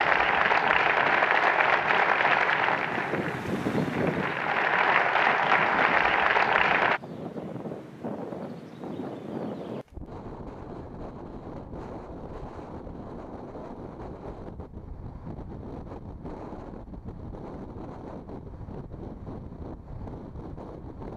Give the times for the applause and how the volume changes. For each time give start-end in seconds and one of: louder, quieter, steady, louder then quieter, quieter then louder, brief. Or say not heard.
0.0-7.0 quieter then louder.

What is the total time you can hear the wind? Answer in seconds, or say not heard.
21 s.